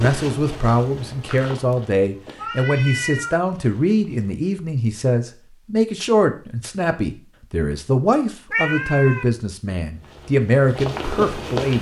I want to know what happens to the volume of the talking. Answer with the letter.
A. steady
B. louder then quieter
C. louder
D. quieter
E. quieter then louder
A.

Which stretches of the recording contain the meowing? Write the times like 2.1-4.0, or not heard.
2.4-3.4, 8.5-9.2.